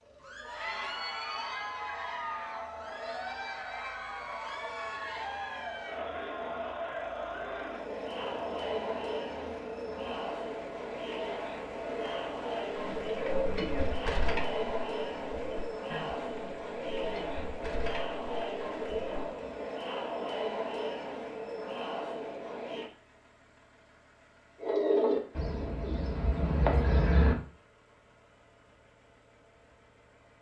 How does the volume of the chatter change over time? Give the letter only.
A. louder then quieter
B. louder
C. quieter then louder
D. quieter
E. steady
E.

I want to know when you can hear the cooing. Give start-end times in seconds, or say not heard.
12.8-19.2, 24.6-27.4.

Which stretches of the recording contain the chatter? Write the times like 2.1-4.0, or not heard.
0.1-22.9.